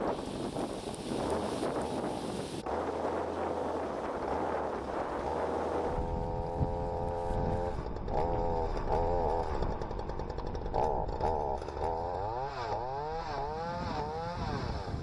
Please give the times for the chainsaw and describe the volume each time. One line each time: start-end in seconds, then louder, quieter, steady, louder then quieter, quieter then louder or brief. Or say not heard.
0.0-14.9 louder.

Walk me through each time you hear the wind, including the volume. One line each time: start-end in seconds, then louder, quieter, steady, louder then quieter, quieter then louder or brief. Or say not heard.
0.0-14.9 quieter.